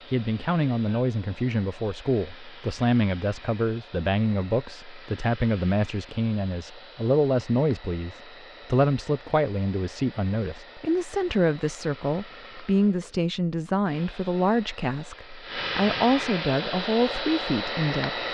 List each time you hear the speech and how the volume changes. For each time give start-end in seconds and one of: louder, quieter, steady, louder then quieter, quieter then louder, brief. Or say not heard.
0.1-18.2 steady.